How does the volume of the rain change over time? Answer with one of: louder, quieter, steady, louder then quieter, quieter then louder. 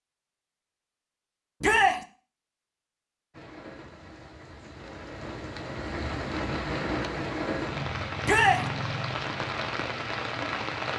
louder.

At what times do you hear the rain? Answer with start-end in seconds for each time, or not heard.
3.3-10.9.